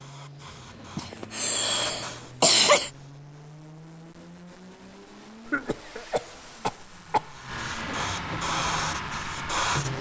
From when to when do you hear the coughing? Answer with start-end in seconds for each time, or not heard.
0.9-2.9, 5.5-7.4.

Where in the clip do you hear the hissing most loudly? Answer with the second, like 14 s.
9 s.